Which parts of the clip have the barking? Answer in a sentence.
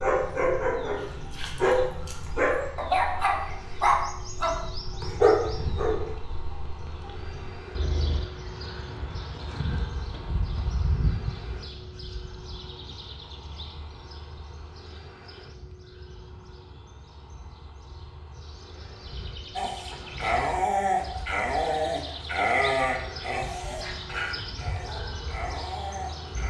The barking can be heard from 0.0 to 6.1 s and from 19.6 to 26.4 s.